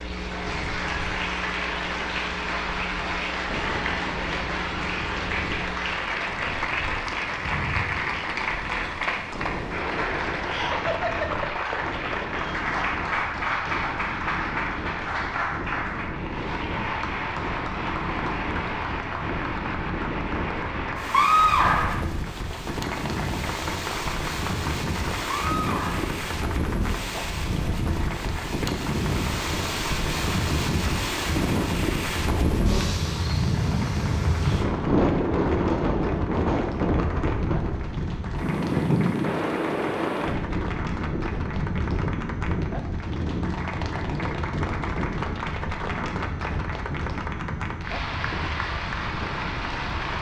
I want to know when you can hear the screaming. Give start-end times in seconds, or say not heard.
21.1-22.0, 25.2-26.1.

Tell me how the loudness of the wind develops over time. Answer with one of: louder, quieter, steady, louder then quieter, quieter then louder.
louder then quieter.